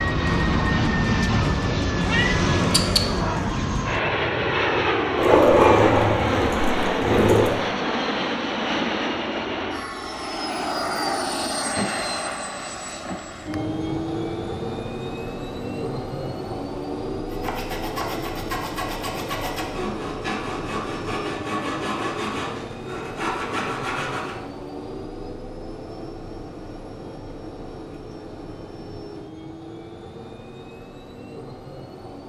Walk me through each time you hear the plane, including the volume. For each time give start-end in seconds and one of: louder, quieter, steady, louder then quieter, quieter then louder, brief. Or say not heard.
0.0-32.2 quieter.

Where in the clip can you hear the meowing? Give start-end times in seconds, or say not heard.
2.0-3.0.